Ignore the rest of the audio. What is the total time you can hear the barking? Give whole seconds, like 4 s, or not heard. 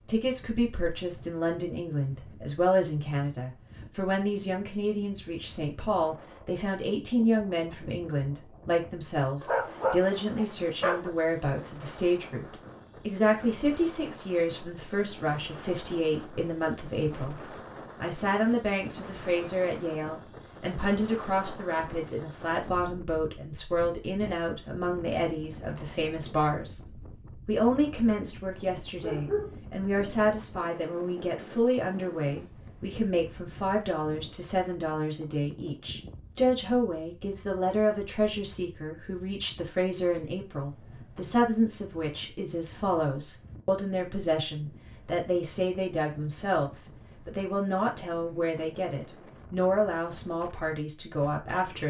3 s.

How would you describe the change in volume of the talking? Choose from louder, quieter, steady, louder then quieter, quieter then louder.
steady.